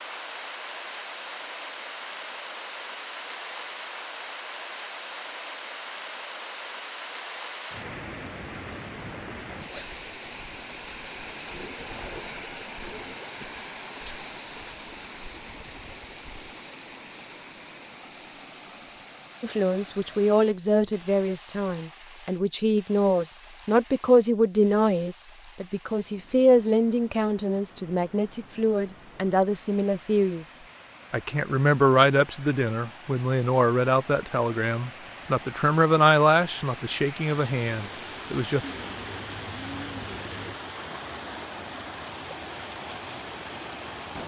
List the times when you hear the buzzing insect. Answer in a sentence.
You can't hear the buzzing insect here.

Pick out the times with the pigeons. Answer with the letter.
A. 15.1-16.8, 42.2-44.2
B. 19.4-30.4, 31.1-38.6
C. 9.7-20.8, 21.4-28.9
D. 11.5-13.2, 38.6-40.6
D.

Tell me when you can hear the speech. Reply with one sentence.
You can hear the speech from 19.4 to 30.4 s and from 31.1 to 38.6 s.